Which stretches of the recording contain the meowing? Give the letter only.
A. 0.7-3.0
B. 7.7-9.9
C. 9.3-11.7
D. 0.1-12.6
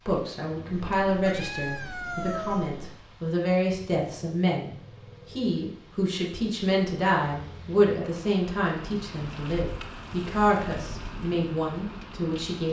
A.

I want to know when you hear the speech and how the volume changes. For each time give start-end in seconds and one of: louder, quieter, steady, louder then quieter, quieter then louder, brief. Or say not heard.
0.1-12.6 steady.